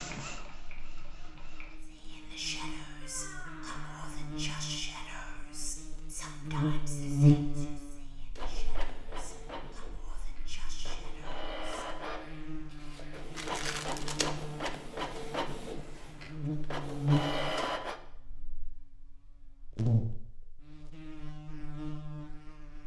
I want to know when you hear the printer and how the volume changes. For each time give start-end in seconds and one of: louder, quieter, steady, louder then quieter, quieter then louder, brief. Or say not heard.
0.0-1.8 brief
8.3-18.0 louder.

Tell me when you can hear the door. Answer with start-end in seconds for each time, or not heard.
3.0-4.1.